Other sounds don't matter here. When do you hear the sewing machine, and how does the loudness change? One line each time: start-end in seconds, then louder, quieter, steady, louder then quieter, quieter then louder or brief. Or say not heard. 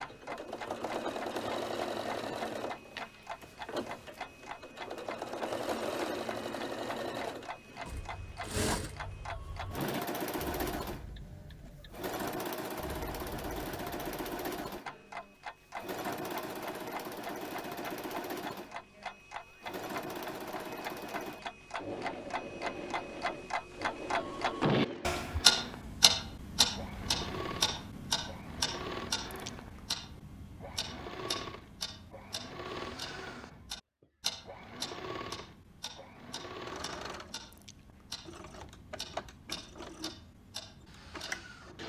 0.0-41.8 quieter.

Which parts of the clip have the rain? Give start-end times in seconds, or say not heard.
not heard.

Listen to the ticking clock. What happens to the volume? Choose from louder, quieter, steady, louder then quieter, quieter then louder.
louder then quieter.